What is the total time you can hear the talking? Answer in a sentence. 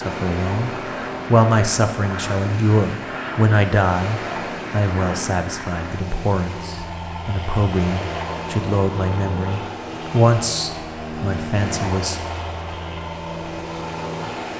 The talking can be heard for 12 seconds in total.